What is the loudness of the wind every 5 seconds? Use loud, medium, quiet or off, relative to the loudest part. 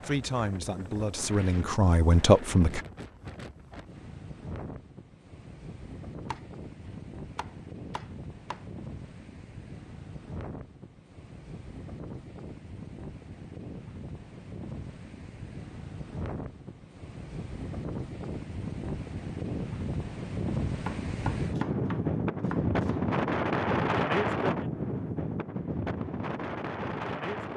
quiet, quiet, quiet, medium, loud, medium.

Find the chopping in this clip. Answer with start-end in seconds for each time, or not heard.
6.3-8.7, 20.9-23.1.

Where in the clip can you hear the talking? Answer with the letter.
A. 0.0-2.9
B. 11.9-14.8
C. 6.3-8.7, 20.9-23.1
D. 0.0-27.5
A.